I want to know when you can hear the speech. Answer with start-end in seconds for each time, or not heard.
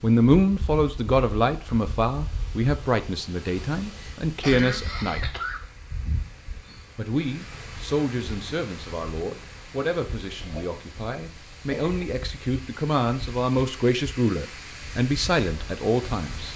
0.0-5.2, 7.0-16.5.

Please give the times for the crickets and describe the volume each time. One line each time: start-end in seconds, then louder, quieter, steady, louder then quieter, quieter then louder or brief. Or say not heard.
not heard.